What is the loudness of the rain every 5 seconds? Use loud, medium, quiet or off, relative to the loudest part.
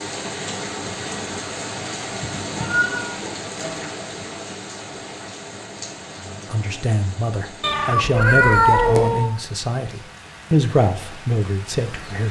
loud, medium, medium.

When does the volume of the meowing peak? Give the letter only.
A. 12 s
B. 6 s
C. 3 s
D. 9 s
D.